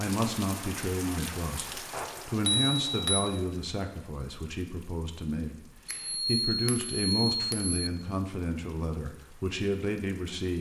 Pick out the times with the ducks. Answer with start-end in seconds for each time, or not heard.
not heard.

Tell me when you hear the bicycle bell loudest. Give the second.
3 s.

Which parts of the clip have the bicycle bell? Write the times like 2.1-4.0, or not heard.
1.9-3.4, 5.8-7.8.